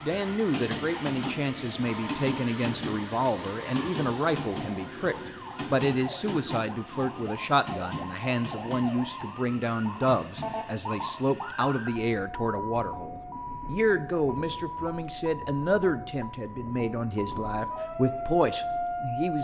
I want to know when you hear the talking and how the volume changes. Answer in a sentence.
You can hear the talking from 0.0 to 19.3 s, at a steady volume.